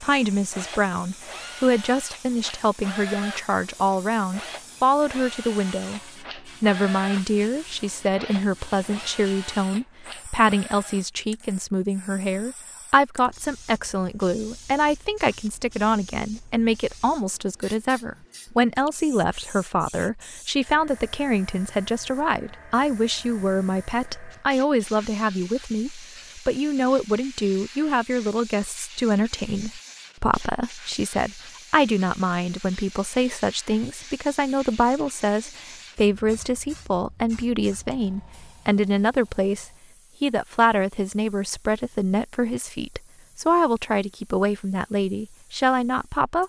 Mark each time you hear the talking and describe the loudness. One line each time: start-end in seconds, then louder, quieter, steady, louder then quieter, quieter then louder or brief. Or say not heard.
0.0-46.4 steady.